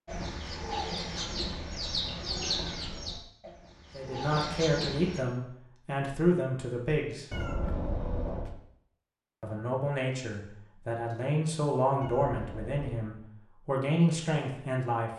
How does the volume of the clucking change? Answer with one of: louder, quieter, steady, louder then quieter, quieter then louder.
quieter then louder.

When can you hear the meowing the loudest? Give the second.
8 s.